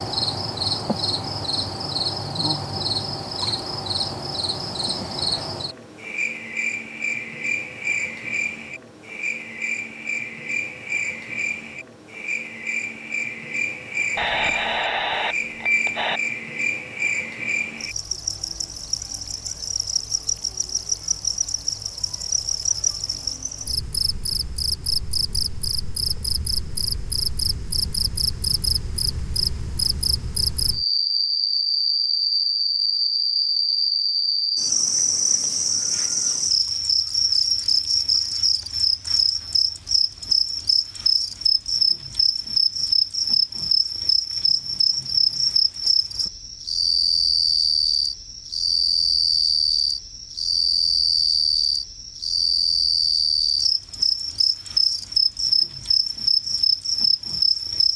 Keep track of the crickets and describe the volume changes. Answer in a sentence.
The volume of the crickets goes up.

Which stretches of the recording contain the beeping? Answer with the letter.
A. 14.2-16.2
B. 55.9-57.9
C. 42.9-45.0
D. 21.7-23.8
A.